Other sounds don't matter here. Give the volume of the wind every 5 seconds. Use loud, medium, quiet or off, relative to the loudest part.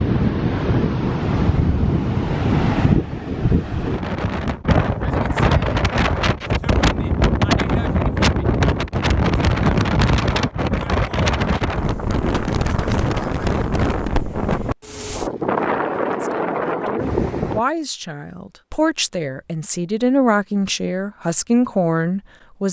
loud, loud, loud, loud, off.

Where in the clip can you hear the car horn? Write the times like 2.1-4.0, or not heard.
not heard.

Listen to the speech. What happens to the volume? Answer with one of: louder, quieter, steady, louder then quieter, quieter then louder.
louder.